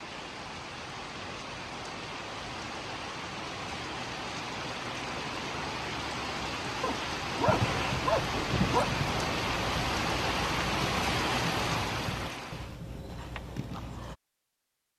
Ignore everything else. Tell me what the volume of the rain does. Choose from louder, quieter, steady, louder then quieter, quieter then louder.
louder.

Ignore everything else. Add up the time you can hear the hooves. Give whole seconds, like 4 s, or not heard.
7 s.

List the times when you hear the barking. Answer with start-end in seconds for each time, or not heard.
6.8-8.9.